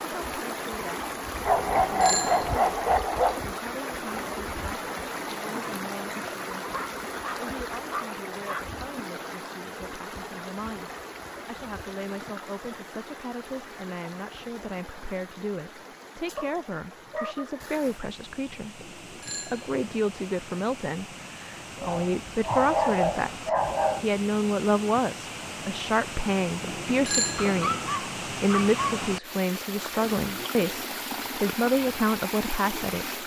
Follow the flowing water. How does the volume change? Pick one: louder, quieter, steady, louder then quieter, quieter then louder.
quieter then louder.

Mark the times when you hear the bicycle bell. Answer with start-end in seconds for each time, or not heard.
1.6-2.5, 18.8-20.0, 26.6-27.9.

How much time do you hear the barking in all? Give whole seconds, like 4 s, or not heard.
9 s.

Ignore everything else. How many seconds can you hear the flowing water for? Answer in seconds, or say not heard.
33 s.